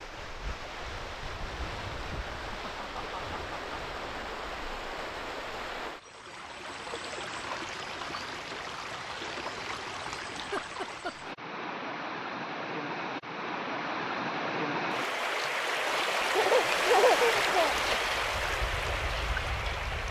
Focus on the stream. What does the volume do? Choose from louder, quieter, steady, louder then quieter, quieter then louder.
louder.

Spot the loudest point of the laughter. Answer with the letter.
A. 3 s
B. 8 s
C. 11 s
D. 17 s
D.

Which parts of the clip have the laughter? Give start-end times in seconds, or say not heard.
2.1-3.8, 10.3-11.3, 16.3-17.8.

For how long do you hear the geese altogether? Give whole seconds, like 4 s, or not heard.
not heard.